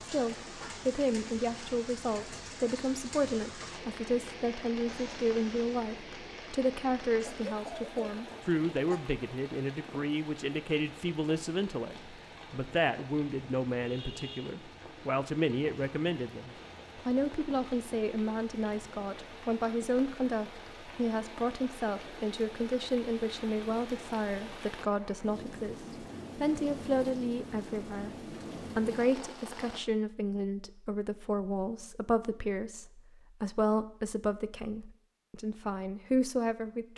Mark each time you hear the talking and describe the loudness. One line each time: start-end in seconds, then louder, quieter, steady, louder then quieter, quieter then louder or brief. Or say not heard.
0.0-36.9 steady.